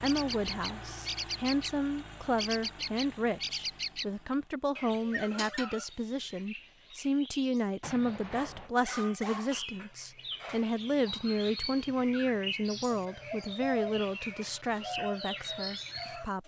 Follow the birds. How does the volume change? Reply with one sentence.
The volume of the birds goes down, then up.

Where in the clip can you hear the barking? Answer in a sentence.
The barking can be heard from 8.3 to 9.6 s.